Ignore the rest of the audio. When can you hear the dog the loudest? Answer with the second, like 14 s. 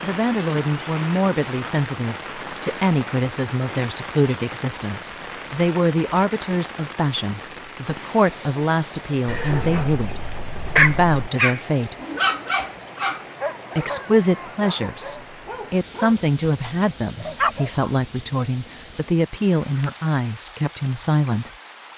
11 s.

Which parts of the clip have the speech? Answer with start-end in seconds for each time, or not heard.
0.0-11.9, 13.8-21.5.